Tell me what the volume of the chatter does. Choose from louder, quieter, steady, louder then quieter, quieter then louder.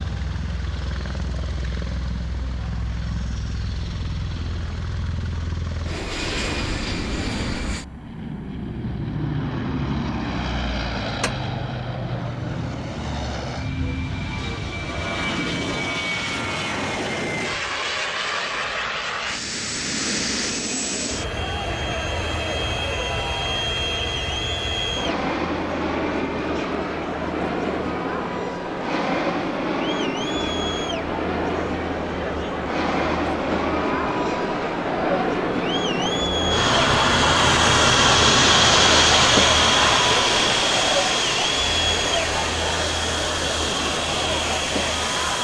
louder.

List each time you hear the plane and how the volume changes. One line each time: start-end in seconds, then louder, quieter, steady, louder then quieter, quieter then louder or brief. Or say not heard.
0.0-45.3 louder.